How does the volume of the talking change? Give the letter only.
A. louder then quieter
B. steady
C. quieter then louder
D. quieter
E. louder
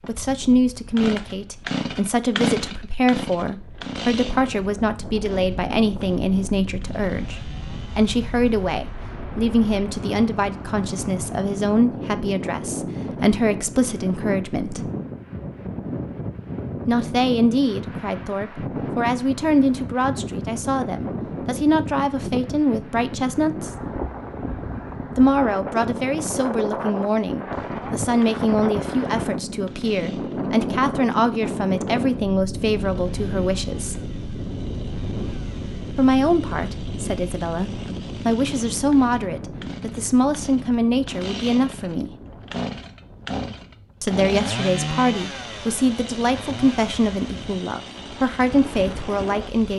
B.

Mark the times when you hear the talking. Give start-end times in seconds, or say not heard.
0.1-14.9, 16.9-23.7, 25.1-34.0, 36.0-42.1, 44.0-49.7.